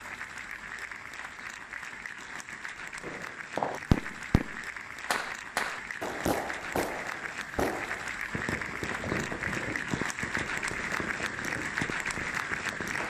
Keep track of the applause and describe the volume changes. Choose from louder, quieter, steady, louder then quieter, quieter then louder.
louder.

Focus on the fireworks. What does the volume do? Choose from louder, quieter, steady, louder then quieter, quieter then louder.
quieter.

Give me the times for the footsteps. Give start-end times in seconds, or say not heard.
not heard.